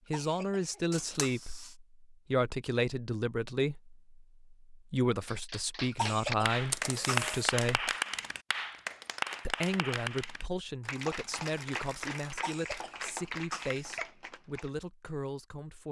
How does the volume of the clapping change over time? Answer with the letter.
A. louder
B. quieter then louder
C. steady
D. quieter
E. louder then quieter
D.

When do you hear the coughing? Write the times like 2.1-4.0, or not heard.
0.1-1.4, 5.9-7.3, 12.3-14.1.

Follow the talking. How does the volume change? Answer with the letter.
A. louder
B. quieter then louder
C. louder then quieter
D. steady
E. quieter
E.